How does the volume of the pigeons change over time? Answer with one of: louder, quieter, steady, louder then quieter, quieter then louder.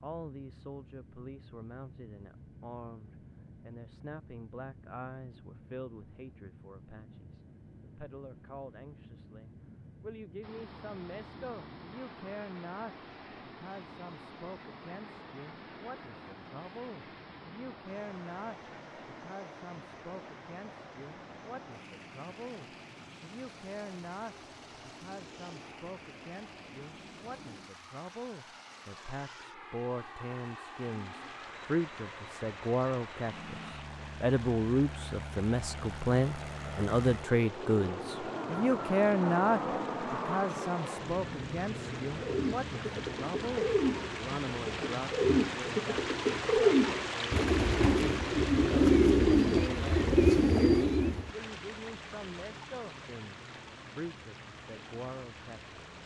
louder.